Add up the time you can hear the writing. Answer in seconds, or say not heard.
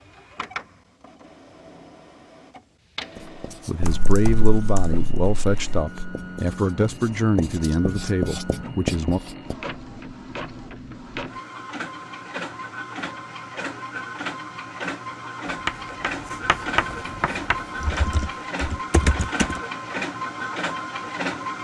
9 s.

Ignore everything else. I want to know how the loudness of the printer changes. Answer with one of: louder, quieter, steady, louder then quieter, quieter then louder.
louder.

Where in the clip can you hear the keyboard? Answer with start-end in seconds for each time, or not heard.
3.8-5.8, 17.8-19.6.